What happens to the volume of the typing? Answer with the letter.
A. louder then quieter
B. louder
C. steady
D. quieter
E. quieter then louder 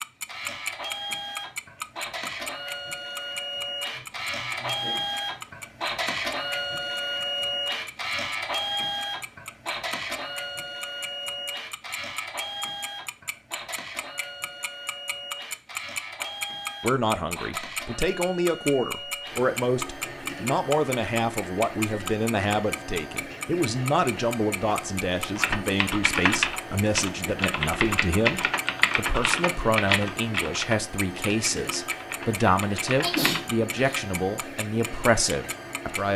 D.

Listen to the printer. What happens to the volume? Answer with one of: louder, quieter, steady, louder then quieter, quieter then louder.
quieter.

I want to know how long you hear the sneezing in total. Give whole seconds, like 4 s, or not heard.
2 s.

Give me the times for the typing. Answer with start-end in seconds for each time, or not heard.
25.4-33.4.